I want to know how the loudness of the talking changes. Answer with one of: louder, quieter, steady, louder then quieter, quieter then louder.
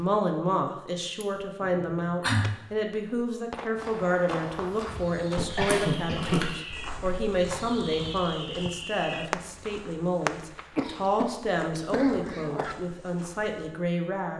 steady.